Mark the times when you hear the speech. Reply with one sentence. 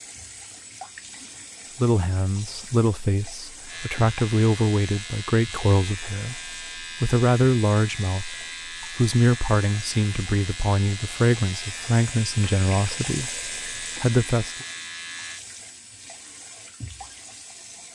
The speech can be heard from 1.8 to 14.7 s.